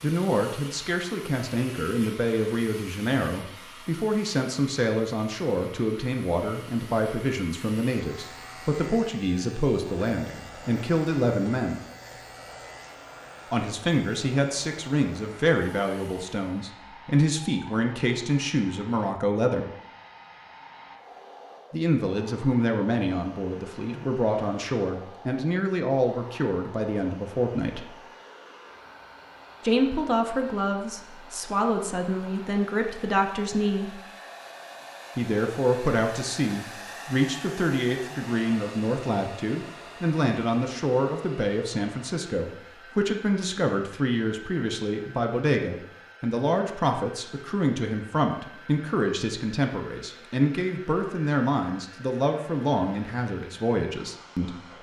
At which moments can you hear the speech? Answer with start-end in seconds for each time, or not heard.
0.0-11.8, 13.5-19.6, 21.7-27.9, 29.6-34.0, 35.1-54.6.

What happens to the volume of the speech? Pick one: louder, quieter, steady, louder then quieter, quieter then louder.
steady.